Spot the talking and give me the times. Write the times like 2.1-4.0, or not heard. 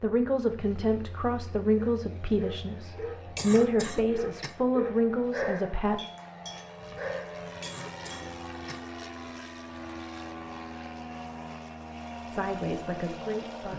0.0-6.0, 12.2-13.7.